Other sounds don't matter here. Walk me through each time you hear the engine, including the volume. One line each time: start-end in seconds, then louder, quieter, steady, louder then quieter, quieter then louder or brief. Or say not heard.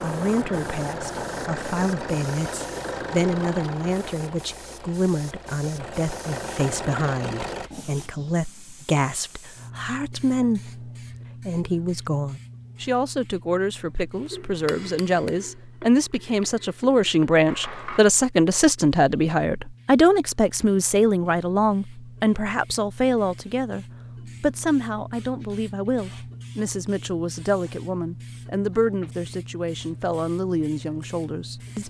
0.0-7.7 quieter then louder.